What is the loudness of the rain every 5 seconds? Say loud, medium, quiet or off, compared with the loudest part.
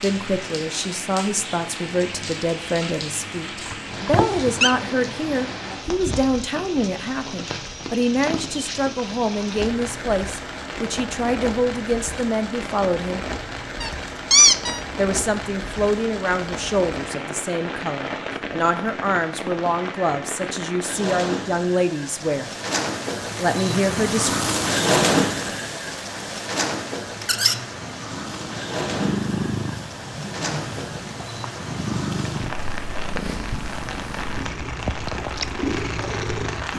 medium, medium, medium, medium, loud, loud, medium, medium.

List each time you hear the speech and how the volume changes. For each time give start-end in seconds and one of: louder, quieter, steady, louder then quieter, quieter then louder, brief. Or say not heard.
0.0-13.2 steady
14.9-22.5 steady
23.4-24.3 brief.